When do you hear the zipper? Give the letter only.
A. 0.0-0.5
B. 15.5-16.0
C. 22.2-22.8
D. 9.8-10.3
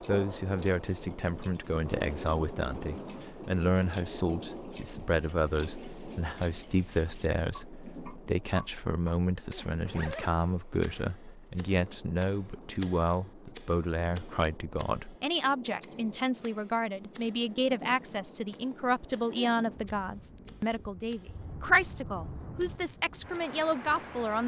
D.